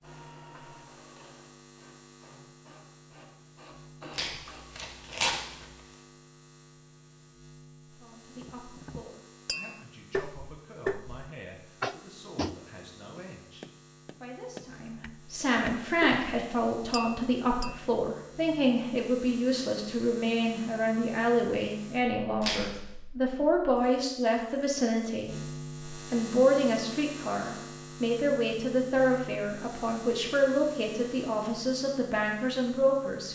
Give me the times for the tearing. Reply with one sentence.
The tearing can be heard from 4.1 to 5.8 s and from 22.4 to 22.9 s.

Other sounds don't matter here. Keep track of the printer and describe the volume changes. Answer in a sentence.
The volume of the printer goes down, then up.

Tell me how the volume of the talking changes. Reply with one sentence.
The volume of the talking goes up.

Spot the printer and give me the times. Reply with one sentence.
You can hear the printer from 0.0 to 4.7 s.